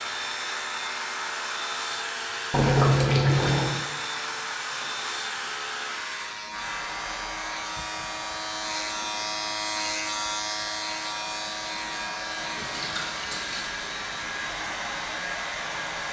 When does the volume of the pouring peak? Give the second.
3 s.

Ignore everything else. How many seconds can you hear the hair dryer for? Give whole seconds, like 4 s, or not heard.
16 s.